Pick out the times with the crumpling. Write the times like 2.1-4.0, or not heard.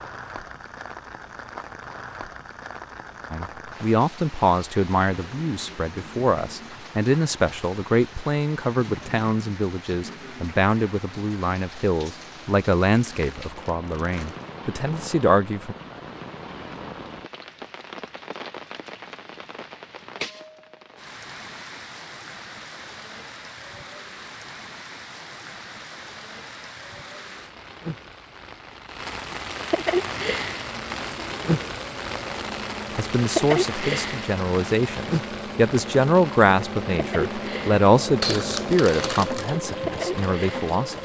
12.9-14.5, 38.2-39.5.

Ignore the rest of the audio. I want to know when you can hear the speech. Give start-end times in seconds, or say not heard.
3.3-15.8, 33.0-41.0.